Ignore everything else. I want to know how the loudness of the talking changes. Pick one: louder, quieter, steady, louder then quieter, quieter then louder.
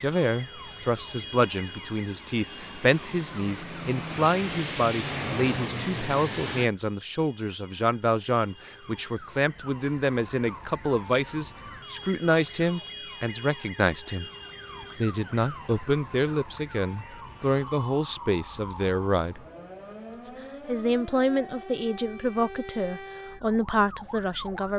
steady.